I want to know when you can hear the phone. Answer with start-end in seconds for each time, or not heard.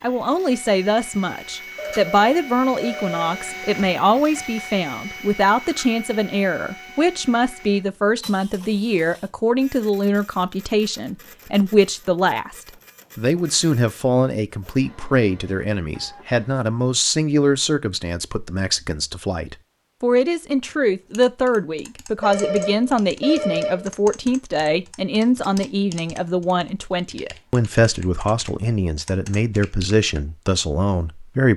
1.8-3.5, 22.2-23.9.